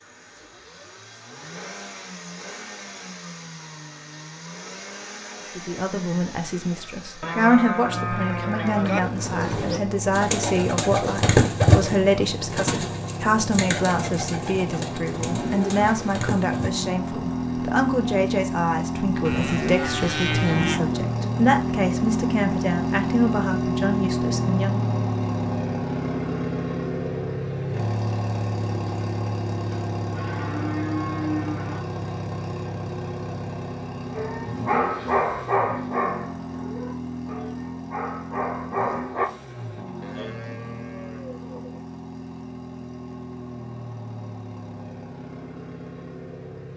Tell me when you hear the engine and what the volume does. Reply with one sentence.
The engine can be heard from 0.0 to 46.7 s, getting louder then quieter.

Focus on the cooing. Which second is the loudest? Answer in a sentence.
The volume of the cooing peaks at 12 seconds.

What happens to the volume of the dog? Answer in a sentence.
The volume of the dog goes down, then up.